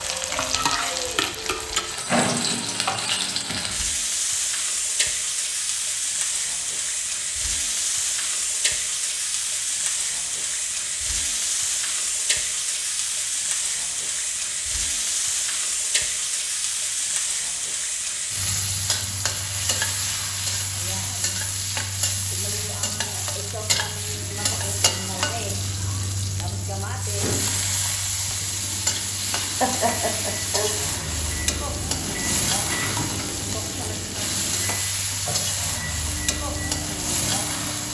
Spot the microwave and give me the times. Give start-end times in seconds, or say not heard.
24.1-37.8.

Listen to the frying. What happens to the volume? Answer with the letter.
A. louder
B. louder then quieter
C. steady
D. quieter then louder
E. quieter
C.